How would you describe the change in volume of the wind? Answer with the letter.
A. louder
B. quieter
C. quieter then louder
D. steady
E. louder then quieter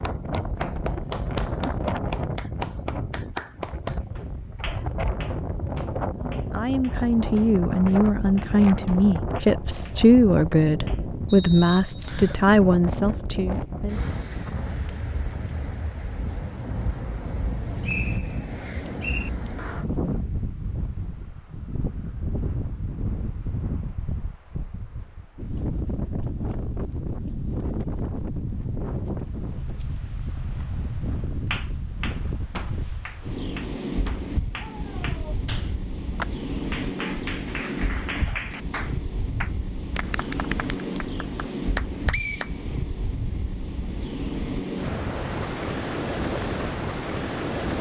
D.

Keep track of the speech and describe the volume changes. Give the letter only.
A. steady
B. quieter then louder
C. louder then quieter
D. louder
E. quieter
A.